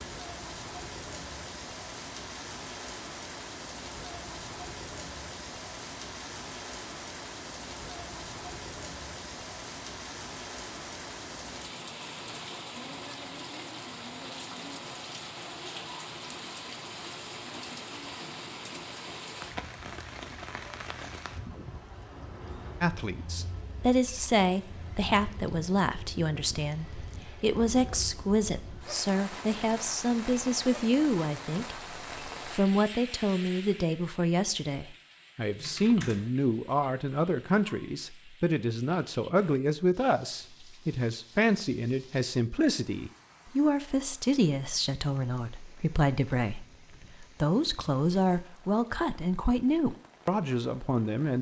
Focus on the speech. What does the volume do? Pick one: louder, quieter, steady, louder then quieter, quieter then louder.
steady.